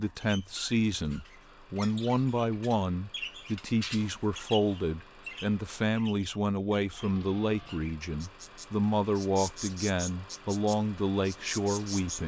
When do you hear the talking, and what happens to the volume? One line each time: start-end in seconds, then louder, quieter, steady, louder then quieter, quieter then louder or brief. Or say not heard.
0.0-12.2 steady.